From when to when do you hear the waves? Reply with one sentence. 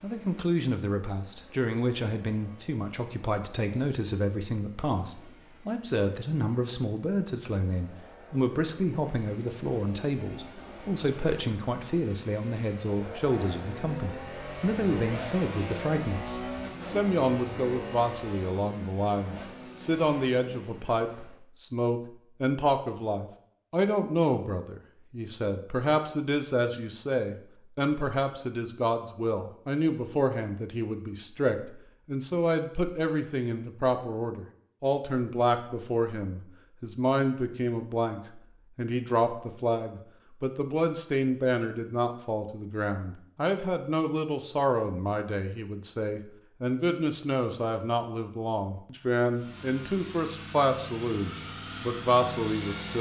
You can't hear the waves here.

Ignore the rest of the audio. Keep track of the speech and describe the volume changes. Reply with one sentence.
The loudness of the speech stays about the same.